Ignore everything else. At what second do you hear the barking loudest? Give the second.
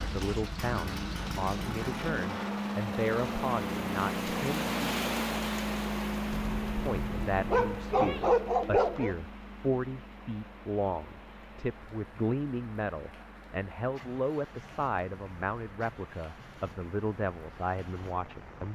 8 s.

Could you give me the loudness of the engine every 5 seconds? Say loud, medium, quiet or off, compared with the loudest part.
loud, loud, quiet, quiet.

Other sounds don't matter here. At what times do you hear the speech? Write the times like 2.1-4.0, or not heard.
0.0-5.0, 6.8-18.6.